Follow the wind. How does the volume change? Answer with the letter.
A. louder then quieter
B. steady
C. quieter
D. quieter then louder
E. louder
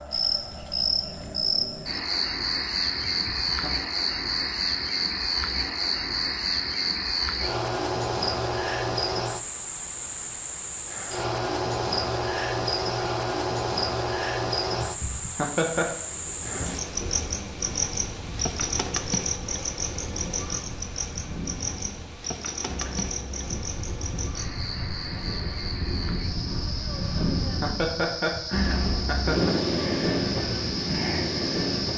E.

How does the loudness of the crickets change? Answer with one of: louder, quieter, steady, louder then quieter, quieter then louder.
quieter.